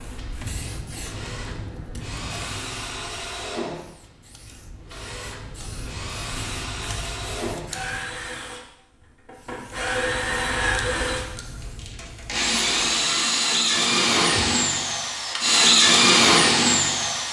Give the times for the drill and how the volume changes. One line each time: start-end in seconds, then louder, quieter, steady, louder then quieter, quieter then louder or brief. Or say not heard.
0.0-17.2 louder.